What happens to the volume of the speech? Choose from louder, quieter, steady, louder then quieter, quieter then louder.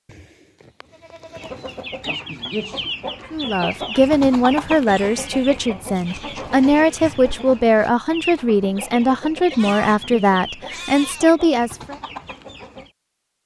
steady.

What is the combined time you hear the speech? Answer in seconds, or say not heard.
9 s.